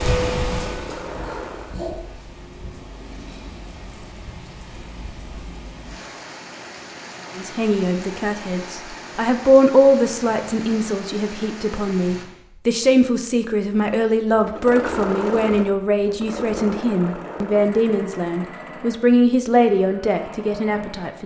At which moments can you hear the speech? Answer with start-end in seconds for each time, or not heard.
7.3-21.2.